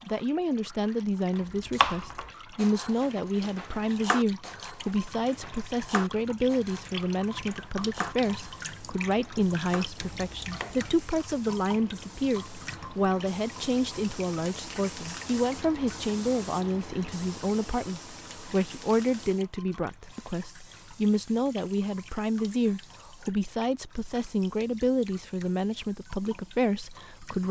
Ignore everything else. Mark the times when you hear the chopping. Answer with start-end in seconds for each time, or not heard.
1.5-10.9.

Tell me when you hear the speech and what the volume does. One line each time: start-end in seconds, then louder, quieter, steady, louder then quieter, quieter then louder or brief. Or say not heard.
0.1-27.4 steady.